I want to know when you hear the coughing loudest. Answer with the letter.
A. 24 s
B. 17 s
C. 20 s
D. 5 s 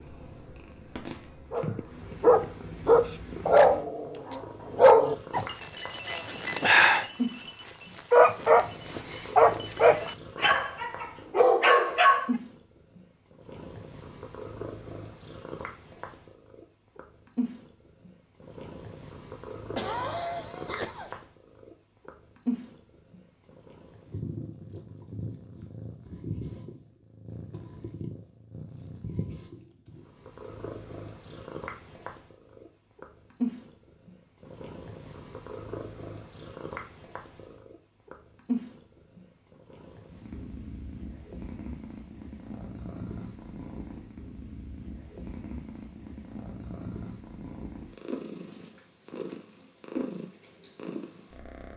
C.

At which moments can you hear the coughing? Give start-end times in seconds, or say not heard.
19.8-21.2.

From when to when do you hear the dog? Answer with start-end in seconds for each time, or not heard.
1.5-12.3.